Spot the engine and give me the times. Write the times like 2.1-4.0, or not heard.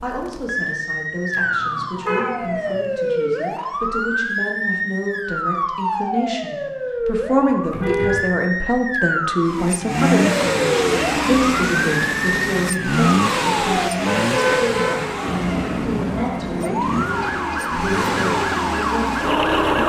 9.4-19.8.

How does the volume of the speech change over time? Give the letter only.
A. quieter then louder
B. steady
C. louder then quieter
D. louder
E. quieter
C.